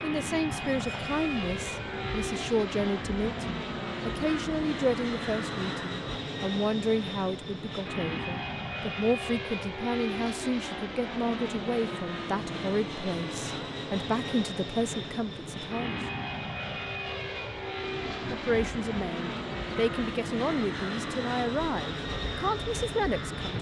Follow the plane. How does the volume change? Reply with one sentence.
The loudness of the plane stays about the same.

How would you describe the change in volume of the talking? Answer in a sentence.
The volume of the talking stays about the same.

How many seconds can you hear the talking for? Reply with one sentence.
The talking can be heard for 21 seconds in total.